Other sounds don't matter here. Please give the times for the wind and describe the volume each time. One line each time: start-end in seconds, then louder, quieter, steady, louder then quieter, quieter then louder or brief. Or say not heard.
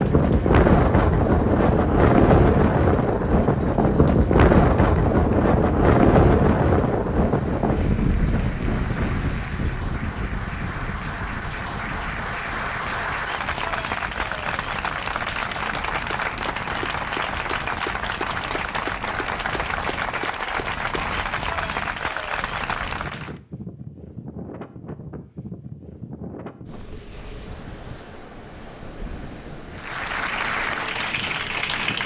0.0-32.0 quieter.